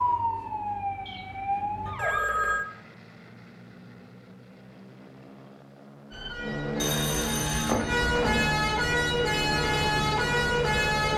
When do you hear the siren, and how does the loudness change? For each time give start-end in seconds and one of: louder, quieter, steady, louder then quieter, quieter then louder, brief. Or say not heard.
0.0-2.2 brief
6.1-11.1 louder.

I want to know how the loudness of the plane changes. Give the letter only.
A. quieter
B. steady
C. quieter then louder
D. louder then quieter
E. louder
E.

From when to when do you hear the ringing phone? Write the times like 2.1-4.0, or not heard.
1.9-2.6, 6.8-8.3.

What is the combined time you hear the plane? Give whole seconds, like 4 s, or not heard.
11 s.